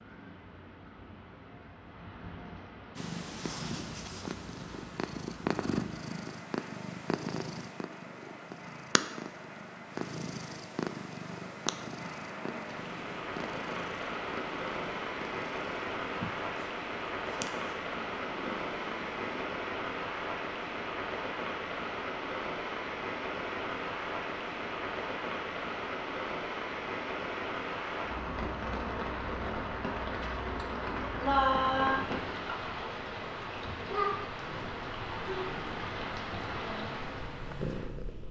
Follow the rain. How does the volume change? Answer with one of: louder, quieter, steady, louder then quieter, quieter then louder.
louder.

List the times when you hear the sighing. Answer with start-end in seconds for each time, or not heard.
30.6-32.6.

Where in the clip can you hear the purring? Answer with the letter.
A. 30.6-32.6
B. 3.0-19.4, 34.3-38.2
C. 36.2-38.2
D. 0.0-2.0
B.